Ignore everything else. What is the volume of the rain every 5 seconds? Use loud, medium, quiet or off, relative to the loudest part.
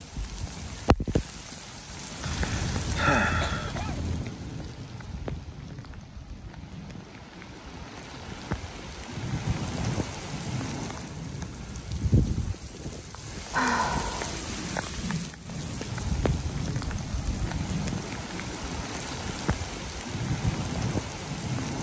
medium, medium, loud, loud, loud.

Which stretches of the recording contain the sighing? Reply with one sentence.
The sighing can be heard from 2.2 to 3.7 s and from 13.5 to 14.4 s.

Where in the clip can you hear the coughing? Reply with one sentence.
You can hear the coughing from 2.4 to 4.2 s.